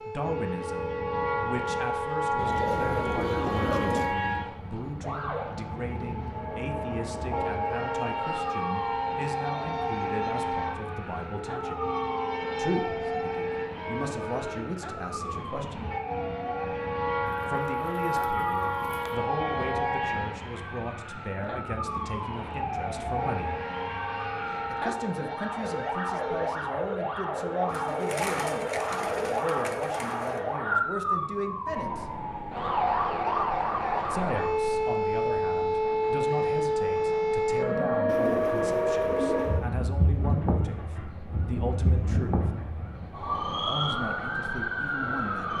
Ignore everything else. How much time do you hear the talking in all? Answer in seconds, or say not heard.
39 s.